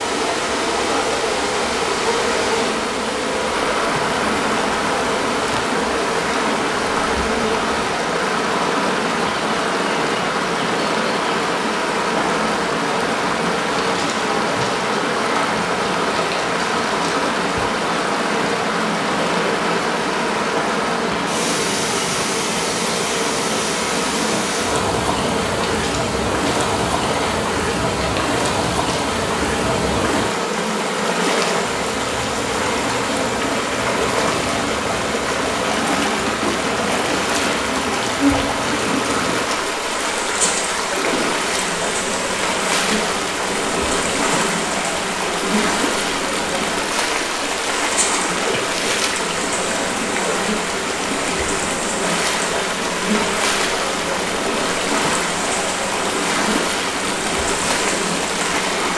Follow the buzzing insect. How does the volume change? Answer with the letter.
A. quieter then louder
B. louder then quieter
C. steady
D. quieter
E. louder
C.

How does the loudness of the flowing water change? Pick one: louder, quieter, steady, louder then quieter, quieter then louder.
steady.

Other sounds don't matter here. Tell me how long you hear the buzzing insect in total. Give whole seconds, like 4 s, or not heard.
59 s.